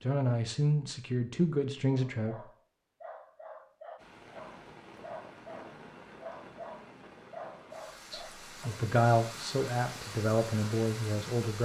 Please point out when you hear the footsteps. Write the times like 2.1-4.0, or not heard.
not heard.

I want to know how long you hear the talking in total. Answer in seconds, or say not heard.
6 s.